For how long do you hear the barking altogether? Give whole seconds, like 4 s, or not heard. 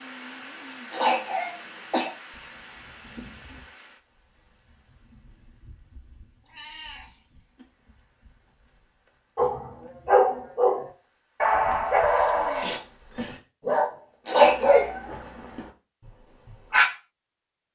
7 s.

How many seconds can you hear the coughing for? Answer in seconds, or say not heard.
2 s.